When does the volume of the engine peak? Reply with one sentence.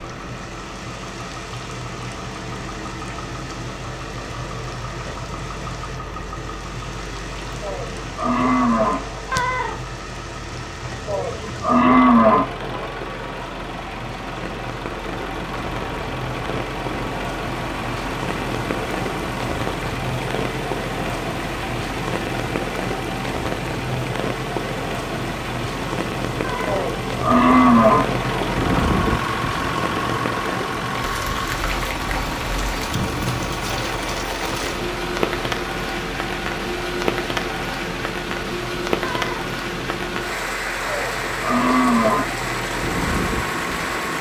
The volume of the engine peaks at 29 seconds.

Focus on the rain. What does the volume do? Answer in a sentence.
The loudness of the rain goes up.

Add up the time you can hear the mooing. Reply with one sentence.
You can hear the mooing for 7 seconds altogether.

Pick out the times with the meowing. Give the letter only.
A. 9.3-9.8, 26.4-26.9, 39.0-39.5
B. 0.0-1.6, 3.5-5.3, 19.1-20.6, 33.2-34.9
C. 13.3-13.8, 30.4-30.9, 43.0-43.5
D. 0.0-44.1
A.